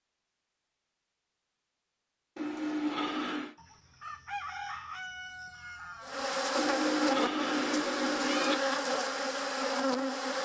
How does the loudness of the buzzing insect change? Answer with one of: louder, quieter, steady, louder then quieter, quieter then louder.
steady.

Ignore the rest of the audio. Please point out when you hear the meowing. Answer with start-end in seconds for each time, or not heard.
2.4-3.5, 6.5-8.6.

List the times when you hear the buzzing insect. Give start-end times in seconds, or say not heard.
6.0-10.3.